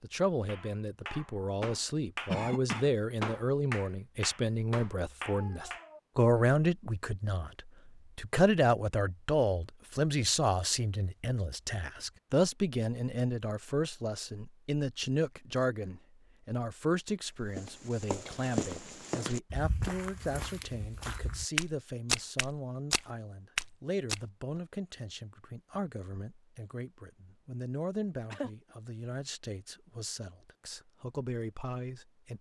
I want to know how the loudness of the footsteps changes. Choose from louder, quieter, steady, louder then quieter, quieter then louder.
quieter then louder.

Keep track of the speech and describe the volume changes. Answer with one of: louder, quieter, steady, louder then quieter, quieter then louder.
quieter.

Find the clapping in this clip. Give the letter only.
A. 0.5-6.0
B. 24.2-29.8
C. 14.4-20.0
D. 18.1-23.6
A.